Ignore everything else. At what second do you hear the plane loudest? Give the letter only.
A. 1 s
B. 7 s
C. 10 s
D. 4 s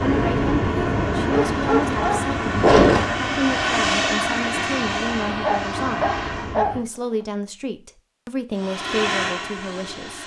D.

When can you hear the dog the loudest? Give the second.
3 s.